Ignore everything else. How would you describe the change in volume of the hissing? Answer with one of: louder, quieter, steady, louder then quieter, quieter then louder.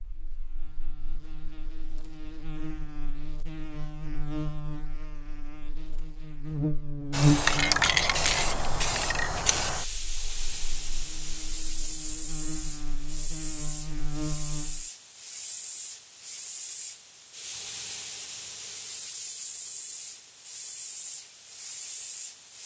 quieter.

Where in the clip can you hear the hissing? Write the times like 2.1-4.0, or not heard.
7.1-22.6.